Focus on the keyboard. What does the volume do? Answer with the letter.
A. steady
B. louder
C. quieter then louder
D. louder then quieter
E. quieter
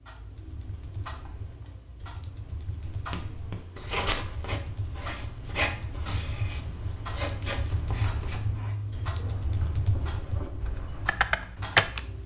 B.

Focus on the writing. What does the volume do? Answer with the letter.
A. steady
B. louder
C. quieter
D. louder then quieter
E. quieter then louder
C.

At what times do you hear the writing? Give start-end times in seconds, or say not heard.
2.8-11.2.